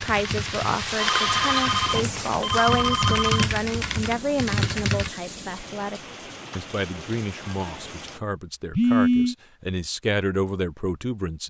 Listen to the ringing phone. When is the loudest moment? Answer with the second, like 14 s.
9 s.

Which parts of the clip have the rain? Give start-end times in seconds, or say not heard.
0.0-8.2.